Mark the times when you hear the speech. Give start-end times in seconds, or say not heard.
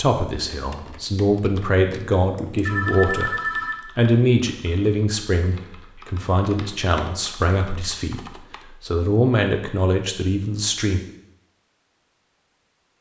0.0-11.0.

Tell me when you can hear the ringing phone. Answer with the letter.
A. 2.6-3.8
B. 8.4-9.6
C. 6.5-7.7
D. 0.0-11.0
A.